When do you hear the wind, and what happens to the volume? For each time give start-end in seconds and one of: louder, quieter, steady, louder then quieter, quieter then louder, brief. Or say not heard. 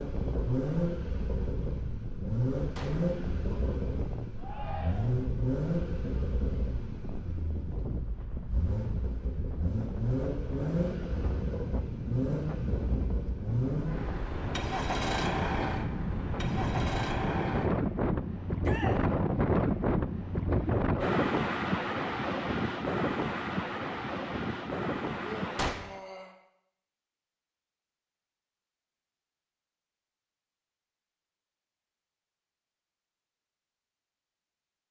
0.0-25.8 louder.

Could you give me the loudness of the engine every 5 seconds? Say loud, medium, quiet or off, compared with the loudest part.
loud, loud, loud, loud, off, off, off.